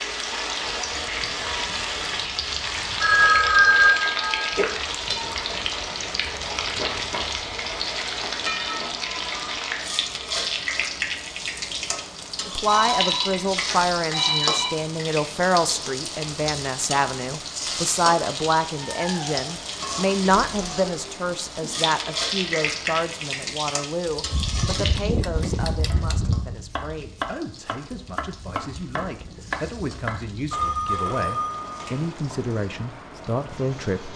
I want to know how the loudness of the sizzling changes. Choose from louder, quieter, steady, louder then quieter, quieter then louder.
quieter.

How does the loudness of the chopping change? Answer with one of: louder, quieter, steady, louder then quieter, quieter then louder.
louder.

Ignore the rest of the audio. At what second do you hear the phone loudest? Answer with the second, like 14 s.
4 s.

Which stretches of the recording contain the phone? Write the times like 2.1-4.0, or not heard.
3.0-4.7, 12.7-14.7, 30.5-32.4.